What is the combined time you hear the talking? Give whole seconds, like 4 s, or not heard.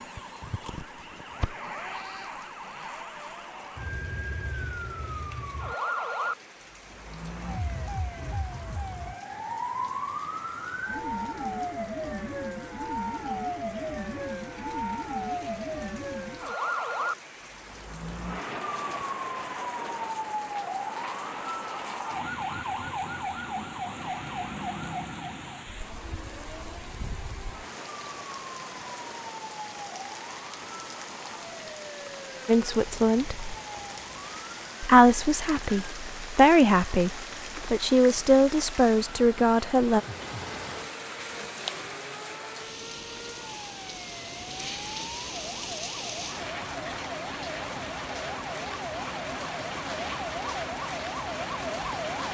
6 s.